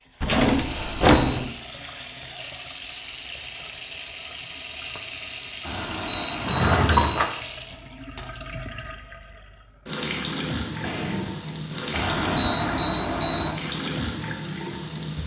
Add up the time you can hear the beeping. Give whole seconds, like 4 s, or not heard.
4 s.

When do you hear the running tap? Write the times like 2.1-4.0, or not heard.
0.1-15.2.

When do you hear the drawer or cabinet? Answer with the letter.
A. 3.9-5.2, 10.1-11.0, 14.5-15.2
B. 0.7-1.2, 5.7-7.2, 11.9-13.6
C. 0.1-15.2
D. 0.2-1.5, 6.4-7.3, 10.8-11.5
D.